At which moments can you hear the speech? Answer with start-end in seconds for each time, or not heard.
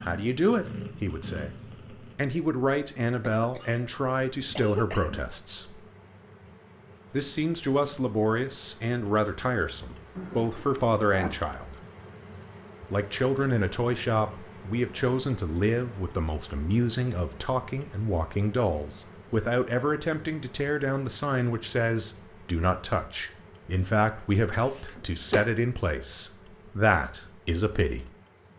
0.0-5.8, 7.1-11.8, 12.9-28.1.